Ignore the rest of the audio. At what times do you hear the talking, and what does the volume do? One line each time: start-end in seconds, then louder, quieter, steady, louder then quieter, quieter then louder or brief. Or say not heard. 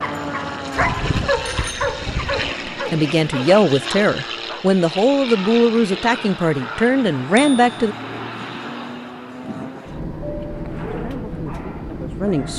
2.6-8.0 steady
10.9-12.5 brief.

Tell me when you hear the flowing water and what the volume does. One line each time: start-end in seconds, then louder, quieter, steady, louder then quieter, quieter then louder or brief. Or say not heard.
not heard.